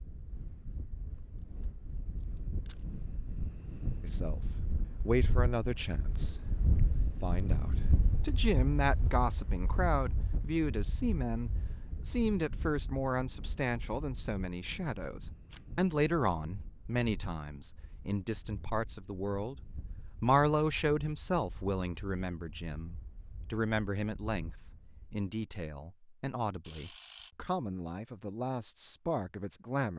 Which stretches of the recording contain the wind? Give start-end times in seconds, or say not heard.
0.0-25.2.